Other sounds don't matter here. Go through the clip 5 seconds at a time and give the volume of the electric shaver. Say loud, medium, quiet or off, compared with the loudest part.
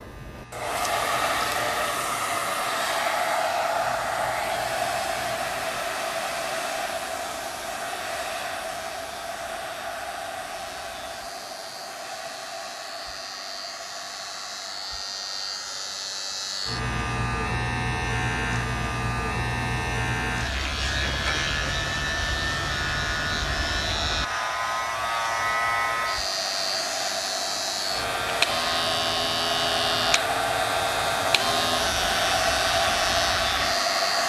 quiet, quiet, quiet, loud, loud, loud, loud.